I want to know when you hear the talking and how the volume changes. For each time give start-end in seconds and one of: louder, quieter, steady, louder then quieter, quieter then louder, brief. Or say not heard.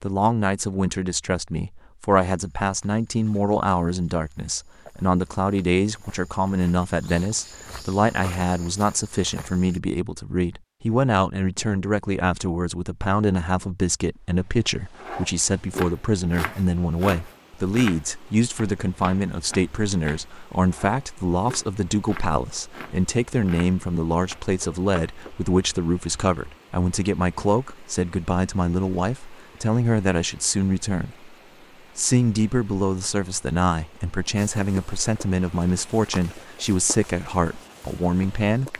0.0-31.3 steady
31.9-38.7 steady.